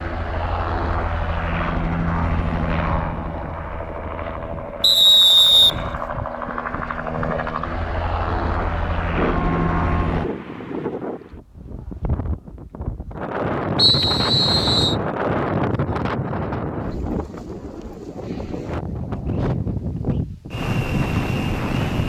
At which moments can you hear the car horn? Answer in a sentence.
You can hear the car horn from 8.2 to 10.2 s.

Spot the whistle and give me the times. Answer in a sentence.
The whistle can be heard from 4.8 to 5.8 s and from 13.8 to 14.9 s.